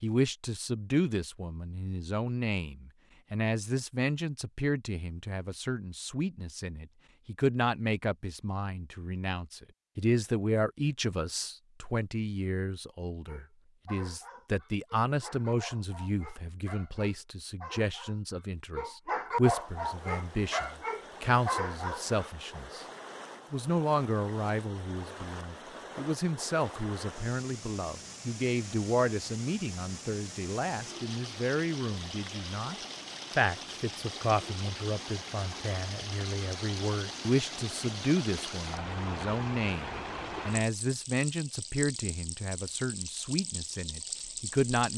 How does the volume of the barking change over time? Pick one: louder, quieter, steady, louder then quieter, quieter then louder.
louder.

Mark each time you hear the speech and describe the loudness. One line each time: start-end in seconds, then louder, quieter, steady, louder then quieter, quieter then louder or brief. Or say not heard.
0.0-22.9 steady
23.5-44.9 steady.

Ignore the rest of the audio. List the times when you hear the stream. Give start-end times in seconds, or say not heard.
19.4-44.9.